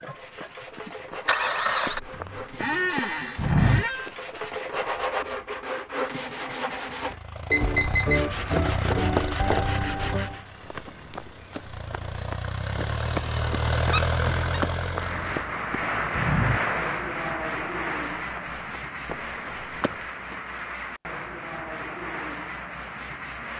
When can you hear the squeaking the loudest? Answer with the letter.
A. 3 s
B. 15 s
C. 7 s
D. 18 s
A.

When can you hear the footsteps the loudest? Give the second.
4 s.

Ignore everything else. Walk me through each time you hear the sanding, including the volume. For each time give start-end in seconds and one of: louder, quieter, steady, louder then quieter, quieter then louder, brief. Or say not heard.
0.0-10.4 louder
14.8-23.5 quieter.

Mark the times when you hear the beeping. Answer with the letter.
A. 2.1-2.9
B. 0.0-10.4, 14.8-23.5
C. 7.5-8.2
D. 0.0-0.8
C.